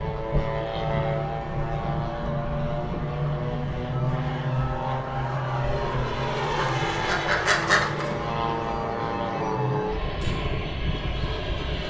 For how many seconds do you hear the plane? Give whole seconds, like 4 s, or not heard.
12 s.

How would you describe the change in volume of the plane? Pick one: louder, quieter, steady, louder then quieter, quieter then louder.
steady.